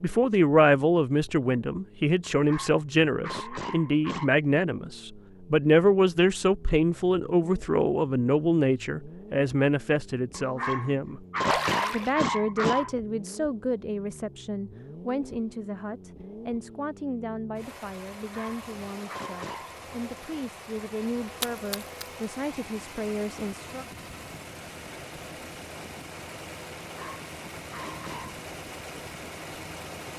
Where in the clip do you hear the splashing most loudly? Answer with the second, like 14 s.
12 s.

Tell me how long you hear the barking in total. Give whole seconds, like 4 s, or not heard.
8 s.